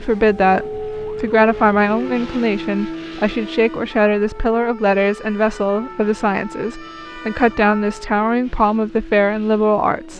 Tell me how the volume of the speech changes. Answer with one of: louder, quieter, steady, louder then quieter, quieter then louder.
steady.